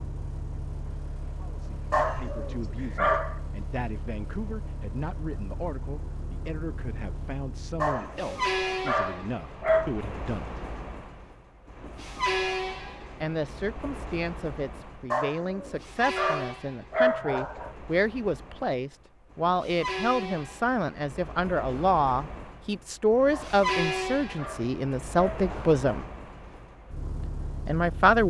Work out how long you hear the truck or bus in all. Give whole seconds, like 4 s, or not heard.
28 s.